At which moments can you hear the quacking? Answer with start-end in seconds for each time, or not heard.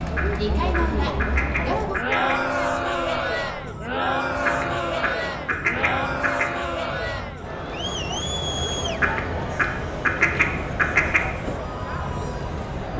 0.1-2.4, 4.4-6.5, 8.9-11.3.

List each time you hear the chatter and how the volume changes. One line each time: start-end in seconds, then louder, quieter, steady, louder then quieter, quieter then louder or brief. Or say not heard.
0.0-12.9 quieter.